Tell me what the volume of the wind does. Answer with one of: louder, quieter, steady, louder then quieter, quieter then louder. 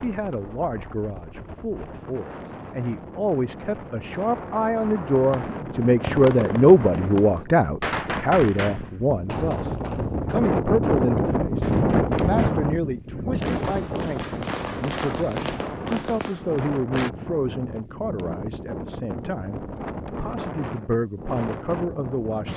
louder then quieter.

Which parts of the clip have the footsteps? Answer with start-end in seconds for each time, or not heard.
not heard.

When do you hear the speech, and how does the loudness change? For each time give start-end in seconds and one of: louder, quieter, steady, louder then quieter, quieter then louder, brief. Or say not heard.
0.0-22.5 louder then quieter.